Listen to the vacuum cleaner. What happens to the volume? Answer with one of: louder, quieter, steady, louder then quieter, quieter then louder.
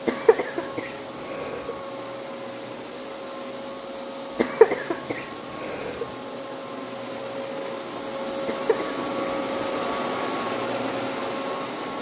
louder.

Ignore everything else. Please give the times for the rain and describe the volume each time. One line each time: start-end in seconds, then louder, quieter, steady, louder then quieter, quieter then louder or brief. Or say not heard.
not heard.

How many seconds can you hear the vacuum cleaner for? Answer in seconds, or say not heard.
12 s.